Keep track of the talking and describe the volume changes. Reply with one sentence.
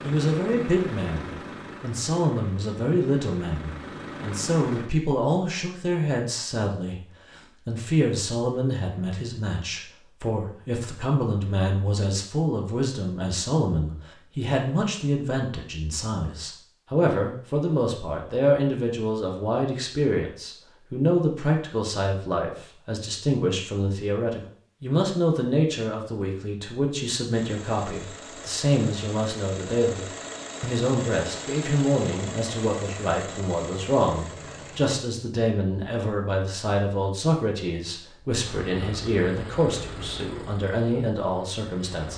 The loudness of the talking stays about the same.